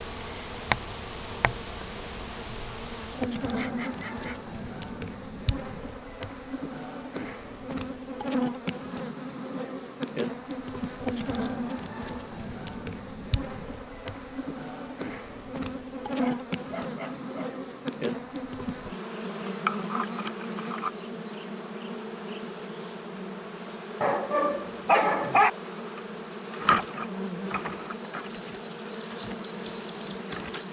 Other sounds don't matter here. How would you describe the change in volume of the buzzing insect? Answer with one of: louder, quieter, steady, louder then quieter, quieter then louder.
steady.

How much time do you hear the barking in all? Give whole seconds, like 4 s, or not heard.
4 s.